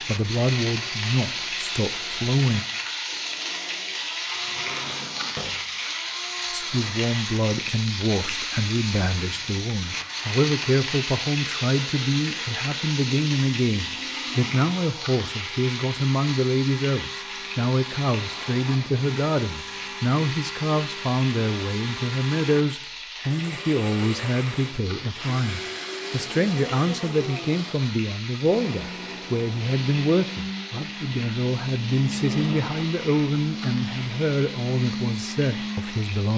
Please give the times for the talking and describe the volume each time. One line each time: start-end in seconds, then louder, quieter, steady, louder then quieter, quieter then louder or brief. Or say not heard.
0.0-2.6 brief
6.5-36.3 steady.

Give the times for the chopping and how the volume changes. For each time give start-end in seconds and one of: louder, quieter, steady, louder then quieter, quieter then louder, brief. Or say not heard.
not heard.